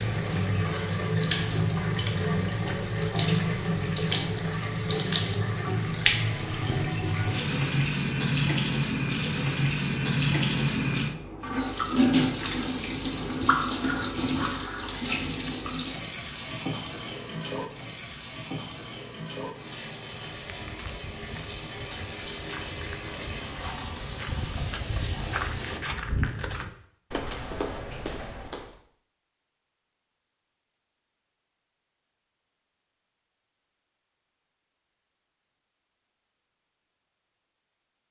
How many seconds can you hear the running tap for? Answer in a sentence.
You can hear the running tap for 26 seconds altogether.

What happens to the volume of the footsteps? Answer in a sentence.
The volume of the footsteps goes up.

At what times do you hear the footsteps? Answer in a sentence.
The footsteps can be heard from 20.3 to 28.8 s.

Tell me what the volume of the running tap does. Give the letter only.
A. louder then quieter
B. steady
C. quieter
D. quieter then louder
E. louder
C.